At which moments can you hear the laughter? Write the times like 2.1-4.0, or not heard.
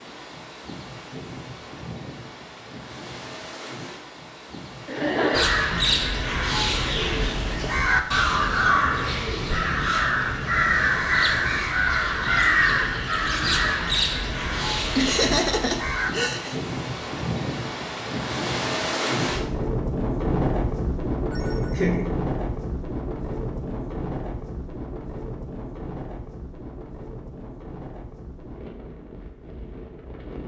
4.8-5.5, 14.9-16.6, 21.3-22.1.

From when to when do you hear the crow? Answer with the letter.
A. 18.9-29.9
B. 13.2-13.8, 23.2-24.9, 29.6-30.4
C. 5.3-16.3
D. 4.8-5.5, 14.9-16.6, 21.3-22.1
C.